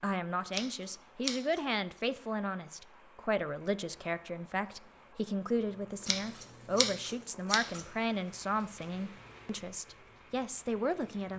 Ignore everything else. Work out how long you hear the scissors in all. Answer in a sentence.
The scissors can be heard for 3 seconds in total.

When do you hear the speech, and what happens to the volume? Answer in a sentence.
The speech can be heard from 0.0 to 11.3 s, at a steady volume.